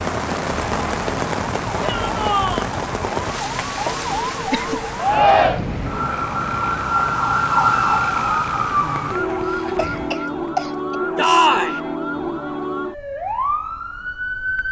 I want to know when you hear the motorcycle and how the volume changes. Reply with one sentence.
The motorcycle can't be heard in this clip.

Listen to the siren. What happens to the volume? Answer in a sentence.
The volume of the siren goes up, then down.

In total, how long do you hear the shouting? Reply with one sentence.
You can hear the shouting for 2 seconds altogether.